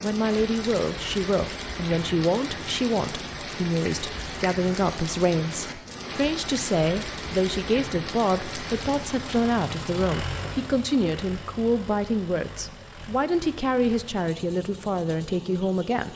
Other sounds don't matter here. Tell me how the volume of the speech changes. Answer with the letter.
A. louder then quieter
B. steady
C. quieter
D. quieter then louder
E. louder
B.